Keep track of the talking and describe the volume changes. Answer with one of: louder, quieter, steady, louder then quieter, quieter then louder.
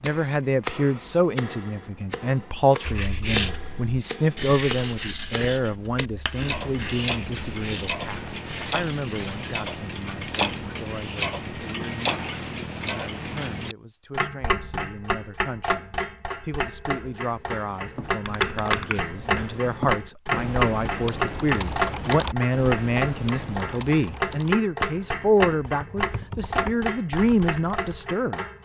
quieter then louder.